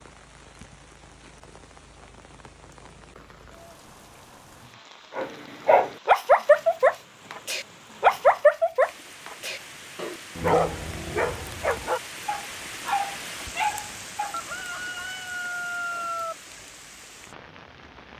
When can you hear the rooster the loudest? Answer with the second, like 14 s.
16 s.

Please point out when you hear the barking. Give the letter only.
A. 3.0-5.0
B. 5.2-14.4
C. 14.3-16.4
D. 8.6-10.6
B.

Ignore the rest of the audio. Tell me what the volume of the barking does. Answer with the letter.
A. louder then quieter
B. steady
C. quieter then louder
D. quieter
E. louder
D.